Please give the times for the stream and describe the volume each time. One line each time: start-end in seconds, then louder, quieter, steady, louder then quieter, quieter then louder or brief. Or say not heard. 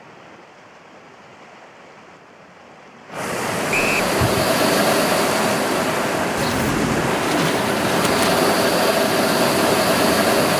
0.0-10.5 louder.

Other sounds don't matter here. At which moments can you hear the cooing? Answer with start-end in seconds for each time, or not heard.
6.3-8.4.